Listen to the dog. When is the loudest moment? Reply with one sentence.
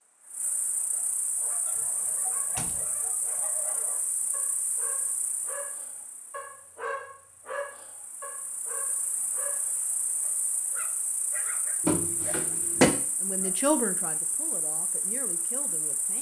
The loudest moment of the dog is at 7 seconds.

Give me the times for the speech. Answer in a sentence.
You can hear the speech from 13.2 to 16.1 s.